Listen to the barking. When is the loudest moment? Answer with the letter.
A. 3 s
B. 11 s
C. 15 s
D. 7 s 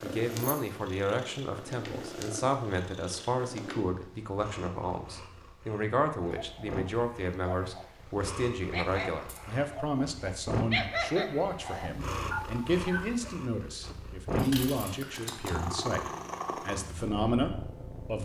B.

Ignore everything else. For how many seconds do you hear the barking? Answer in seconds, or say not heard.
7 s.